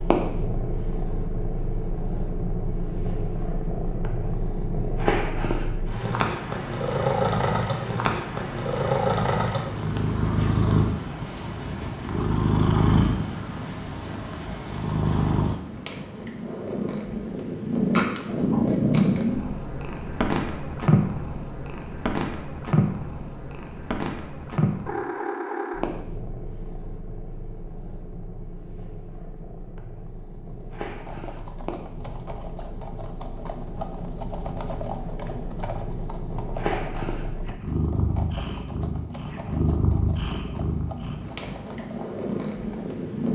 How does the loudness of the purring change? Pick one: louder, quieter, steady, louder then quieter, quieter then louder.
quieter then louder.